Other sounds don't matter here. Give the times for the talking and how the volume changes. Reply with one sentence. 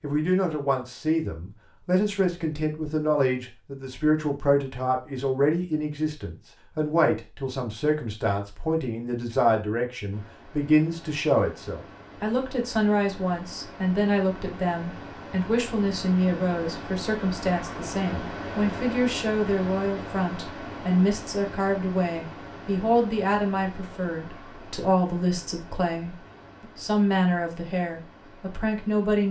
You can hear the talking from 0.0 to 29.2 s, at a steady volume.